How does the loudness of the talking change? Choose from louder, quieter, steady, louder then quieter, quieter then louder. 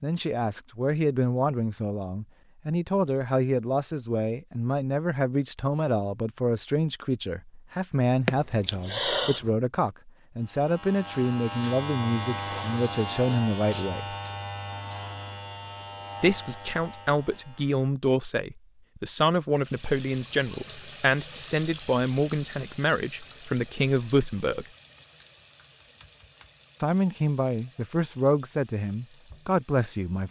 steady.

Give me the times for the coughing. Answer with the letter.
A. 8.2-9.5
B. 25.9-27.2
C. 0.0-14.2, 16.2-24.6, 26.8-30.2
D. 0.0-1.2
A.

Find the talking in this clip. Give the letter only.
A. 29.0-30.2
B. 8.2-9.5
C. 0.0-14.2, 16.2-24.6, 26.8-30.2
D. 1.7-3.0
C.